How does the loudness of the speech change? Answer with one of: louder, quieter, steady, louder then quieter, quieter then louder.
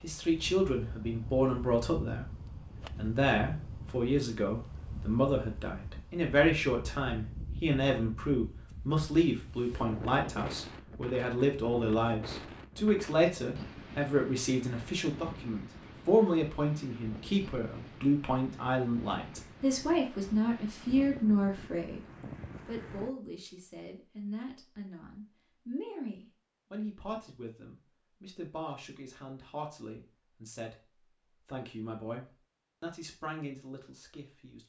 quieter.